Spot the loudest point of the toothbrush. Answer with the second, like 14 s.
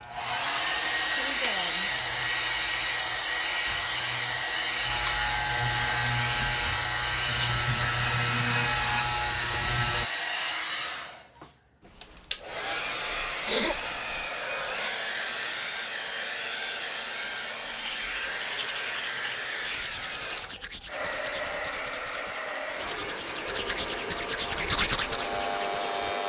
25 s.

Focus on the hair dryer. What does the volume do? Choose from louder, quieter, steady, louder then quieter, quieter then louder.
quieter.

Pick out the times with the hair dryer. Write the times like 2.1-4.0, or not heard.
0.0-26.2.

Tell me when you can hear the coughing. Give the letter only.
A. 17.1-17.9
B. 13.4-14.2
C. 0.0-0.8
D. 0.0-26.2
B.